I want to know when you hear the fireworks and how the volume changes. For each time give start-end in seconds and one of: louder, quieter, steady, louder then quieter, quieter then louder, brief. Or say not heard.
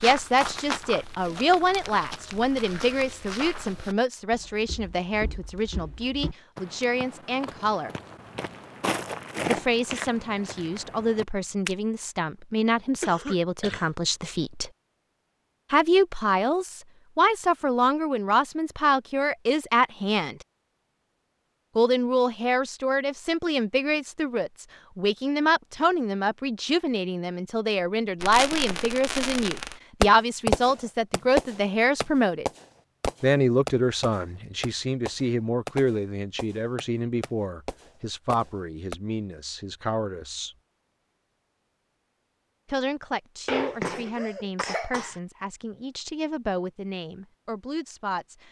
28.2-39.0 quieter.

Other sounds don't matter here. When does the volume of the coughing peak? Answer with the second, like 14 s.
44 s.